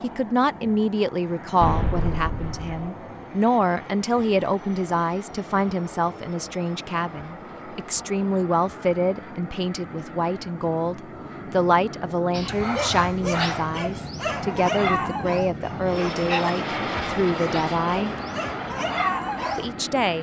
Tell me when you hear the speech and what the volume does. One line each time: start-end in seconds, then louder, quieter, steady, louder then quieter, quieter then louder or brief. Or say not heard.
0.0-18.1 steady
19.6-20.1 brief.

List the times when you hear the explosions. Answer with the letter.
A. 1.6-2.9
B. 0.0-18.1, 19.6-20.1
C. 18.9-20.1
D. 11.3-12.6
A.